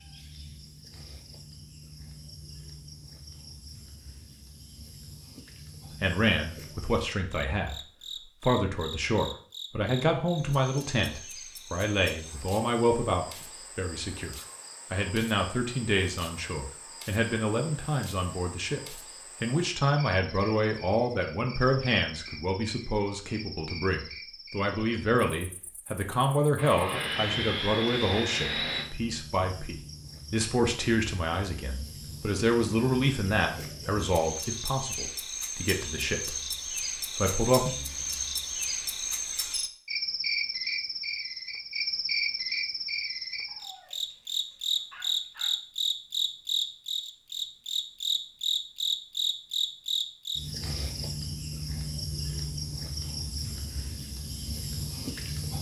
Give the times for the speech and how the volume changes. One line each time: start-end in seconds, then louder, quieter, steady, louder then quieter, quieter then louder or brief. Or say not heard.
5.9-36.4 steady
37.1-37.7 brief.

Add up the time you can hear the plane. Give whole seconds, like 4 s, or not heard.
2 s.